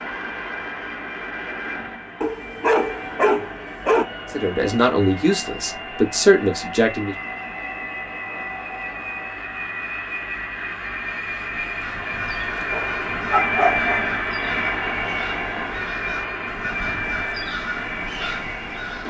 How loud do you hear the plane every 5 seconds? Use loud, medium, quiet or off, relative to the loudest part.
medium, medium, loud, loud.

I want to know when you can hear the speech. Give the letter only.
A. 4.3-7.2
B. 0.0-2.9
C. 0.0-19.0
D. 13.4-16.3
A.